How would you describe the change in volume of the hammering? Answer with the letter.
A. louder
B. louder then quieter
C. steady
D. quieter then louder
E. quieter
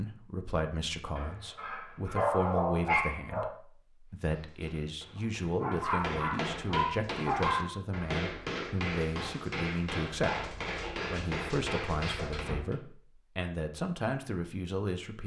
A.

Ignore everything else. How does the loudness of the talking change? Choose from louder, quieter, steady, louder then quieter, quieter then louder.
steady.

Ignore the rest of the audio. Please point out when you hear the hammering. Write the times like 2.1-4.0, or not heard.
4.3-12.8.